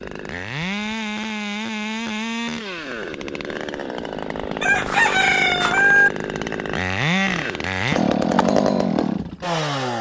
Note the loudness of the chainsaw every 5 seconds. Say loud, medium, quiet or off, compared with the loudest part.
medium, loud.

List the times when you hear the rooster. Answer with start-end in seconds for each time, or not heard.
4.6-6.1.